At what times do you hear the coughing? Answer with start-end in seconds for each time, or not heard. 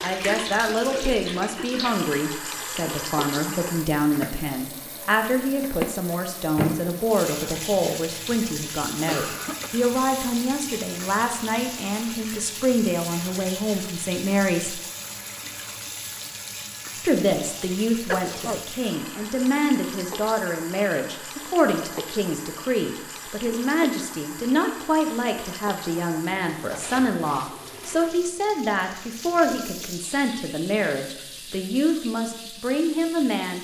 8.9-9.7, 17.6-18.6.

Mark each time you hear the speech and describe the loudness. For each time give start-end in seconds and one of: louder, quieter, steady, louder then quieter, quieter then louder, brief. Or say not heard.
0.0-14.8 steady
16.9-33.5 steady.